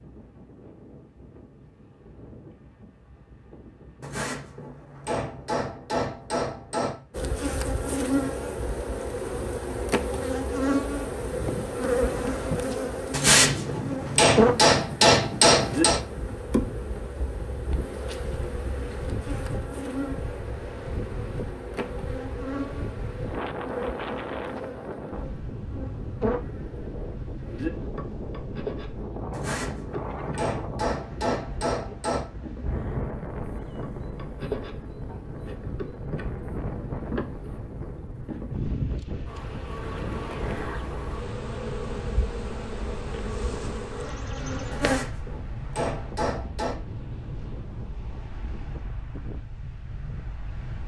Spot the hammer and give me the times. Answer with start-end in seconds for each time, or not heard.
4.0-7.0, 13.1-16.0, 29.3-32.2, 44.7-46.8.